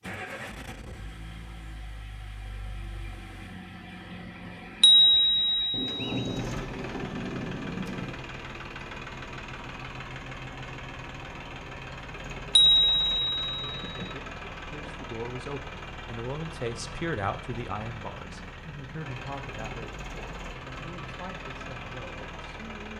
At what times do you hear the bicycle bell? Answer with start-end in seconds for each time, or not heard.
4.8-6.4, 12.6-14.1.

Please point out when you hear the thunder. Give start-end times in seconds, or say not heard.
5.7-8.2.